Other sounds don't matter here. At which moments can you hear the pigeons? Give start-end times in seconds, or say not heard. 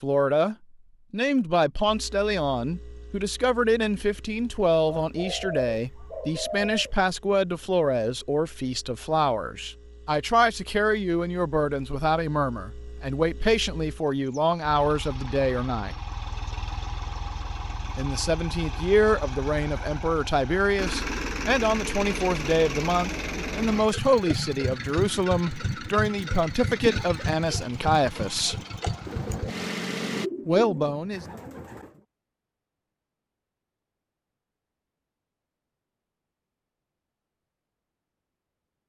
4.8-7.0, 29.1-32.0.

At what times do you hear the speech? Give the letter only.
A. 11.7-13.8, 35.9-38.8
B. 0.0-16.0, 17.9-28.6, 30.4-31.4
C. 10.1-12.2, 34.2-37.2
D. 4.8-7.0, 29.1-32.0
B.